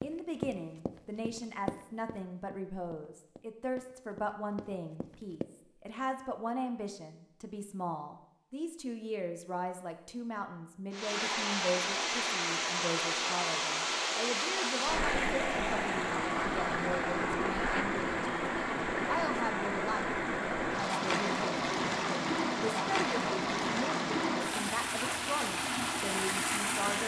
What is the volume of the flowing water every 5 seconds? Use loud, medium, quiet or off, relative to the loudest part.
off, off, loud, loud, loud, loud.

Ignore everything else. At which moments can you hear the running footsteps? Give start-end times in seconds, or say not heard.
0.0-5.5.